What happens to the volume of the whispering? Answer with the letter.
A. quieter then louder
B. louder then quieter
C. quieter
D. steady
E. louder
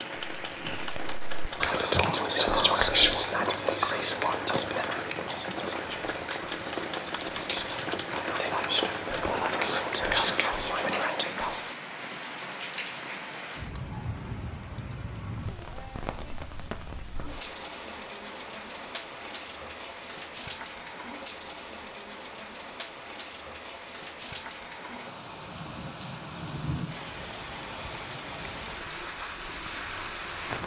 A.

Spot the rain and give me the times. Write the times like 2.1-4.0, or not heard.
0.0-30.6.